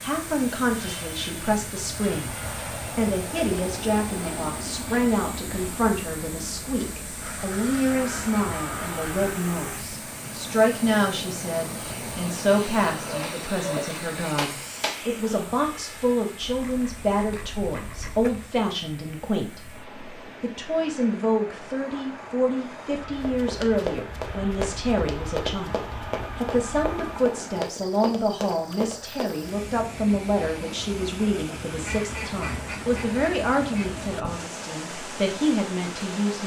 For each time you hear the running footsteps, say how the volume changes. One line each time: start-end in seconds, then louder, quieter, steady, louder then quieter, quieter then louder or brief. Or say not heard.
23.1-29.5 steady.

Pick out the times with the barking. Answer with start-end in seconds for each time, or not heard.
13.1-15.0.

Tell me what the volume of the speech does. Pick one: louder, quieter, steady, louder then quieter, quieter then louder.
steady.